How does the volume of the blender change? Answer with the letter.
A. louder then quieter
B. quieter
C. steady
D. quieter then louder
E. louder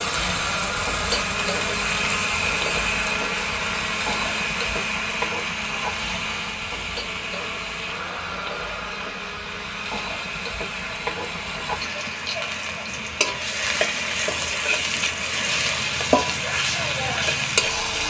B.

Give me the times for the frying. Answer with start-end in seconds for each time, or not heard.
0.0-18.0.